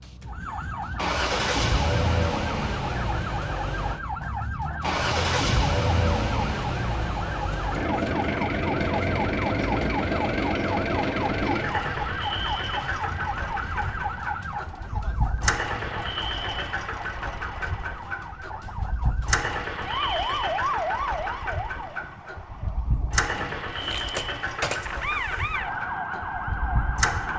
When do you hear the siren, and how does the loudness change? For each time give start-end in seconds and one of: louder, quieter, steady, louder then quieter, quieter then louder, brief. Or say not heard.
0.0-27.3 steady.